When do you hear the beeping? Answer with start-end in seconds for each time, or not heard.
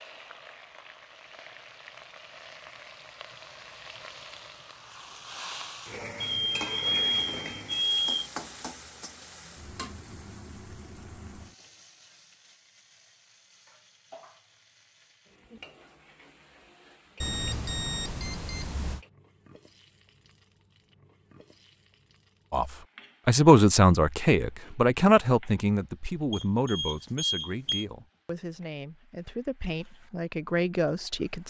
6.2-8.3, 17.2-19.0, 26.3-27.9.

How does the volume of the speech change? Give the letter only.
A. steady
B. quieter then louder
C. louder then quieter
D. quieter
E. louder
B.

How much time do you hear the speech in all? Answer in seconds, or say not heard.
9 s.